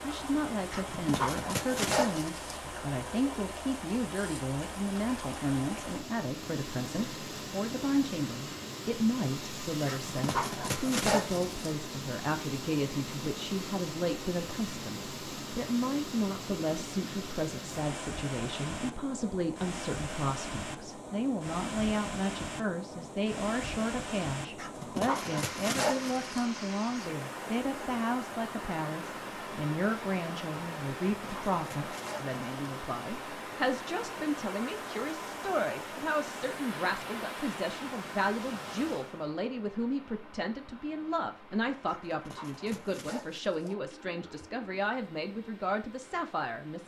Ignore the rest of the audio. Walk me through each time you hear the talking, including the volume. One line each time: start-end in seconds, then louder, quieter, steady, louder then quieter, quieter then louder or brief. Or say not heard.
0.0-46.8 steady.